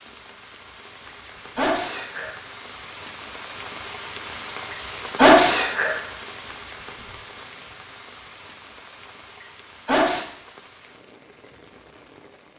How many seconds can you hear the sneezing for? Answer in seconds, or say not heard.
3 s.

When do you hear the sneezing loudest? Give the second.
5 s.